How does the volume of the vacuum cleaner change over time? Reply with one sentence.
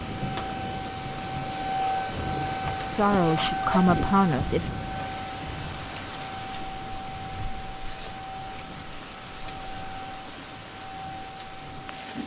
The volume of the vacuum cleaner goes down.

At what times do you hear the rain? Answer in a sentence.
The rain can be heard from 0.0 to 12.2 s.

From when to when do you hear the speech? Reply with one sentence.
The speech can be heard from 3.0 to 4.7 s.